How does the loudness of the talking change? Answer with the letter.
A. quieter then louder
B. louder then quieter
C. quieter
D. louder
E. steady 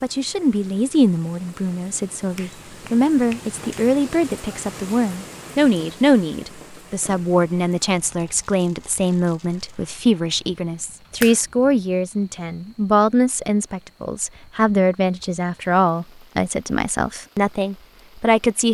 E.